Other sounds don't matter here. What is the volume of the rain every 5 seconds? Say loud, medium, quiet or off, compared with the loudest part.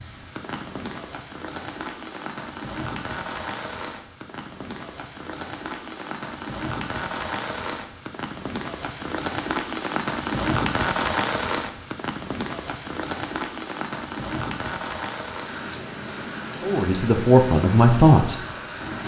medium, loud, loud, medium.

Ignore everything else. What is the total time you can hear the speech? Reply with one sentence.
The speech can be heard for 2 seconds in total.